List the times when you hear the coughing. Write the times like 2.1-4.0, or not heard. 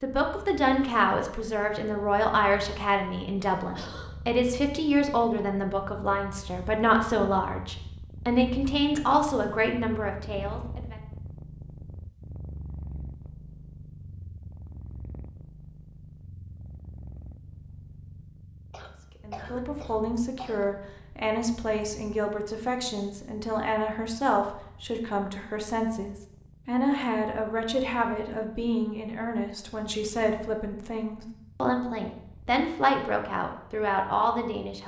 3.7-4.2, 18.7-20.7.